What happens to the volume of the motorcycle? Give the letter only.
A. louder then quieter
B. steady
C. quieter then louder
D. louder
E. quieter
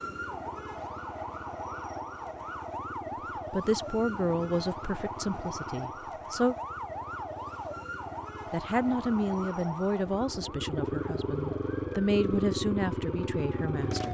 D.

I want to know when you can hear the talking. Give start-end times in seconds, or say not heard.
3.5-6.5, 8.5-14.0.